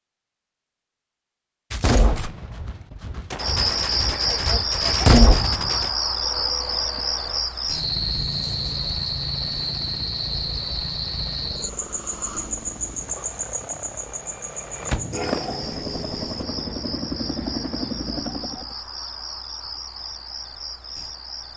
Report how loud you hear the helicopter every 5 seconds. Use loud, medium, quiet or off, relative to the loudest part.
off, medium, medium, loud, off.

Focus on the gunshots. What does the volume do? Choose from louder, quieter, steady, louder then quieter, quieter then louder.
louder.